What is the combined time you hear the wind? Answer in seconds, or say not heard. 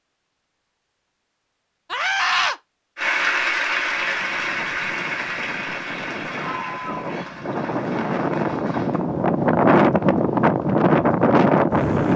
8 s.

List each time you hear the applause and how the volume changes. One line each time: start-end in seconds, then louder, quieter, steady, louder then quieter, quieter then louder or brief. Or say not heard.
3.0-9.1 quieter.